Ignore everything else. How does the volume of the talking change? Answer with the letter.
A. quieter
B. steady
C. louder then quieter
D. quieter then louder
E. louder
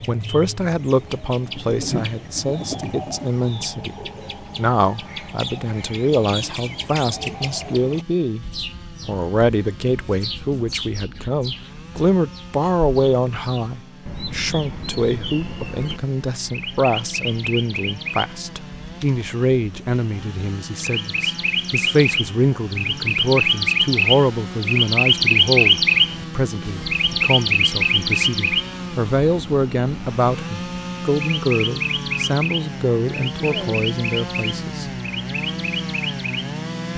B.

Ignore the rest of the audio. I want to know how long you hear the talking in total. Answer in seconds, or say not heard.
34 s.